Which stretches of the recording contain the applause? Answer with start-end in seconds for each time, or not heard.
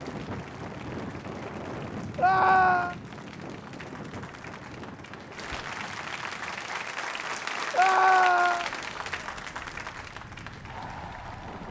0.0-11.6.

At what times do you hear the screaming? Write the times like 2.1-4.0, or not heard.
2.1-3.0, 7.7-8.7.